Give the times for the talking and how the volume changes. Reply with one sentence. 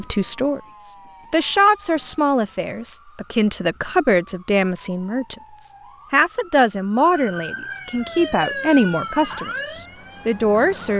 You can hear the talking from 0.0 to 10.9 s, at a steady volume.